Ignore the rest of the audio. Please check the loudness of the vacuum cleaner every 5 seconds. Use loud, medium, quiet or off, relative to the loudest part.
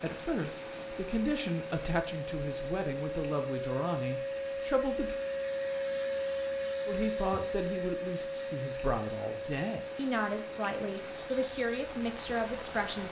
loud, loud, medium.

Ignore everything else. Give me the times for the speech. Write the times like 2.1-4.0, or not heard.
0.0-5.2, 6.8-13.0.